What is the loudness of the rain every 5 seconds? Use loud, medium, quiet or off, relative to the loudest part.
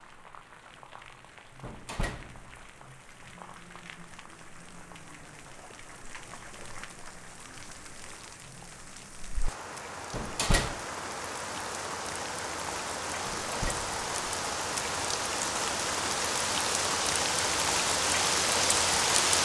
quiet, quiet, medium, loud.